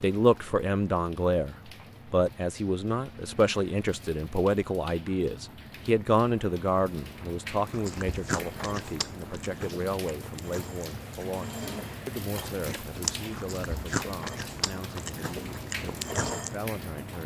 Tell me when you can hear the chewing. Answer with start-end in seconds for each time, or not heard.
7.7-16.6.